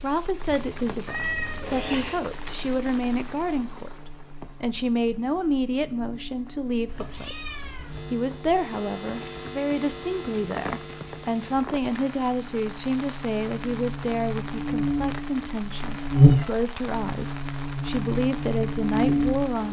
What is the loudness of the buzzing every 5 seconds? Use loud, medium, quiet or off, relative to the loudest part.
quiet, quiet, medium, loud.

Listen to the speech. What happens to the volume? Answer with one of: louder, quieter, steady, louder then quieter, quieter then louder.
steady.